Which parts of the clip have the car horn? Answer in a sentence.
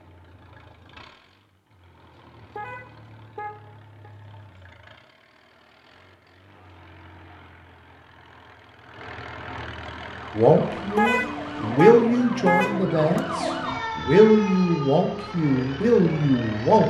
The car horn can be heard from 2.5 to 4.1 s and from 10.9 to 13.2 s.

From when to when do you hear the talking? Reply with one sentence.
You can hear the talking from 10.3 to 16.8 s.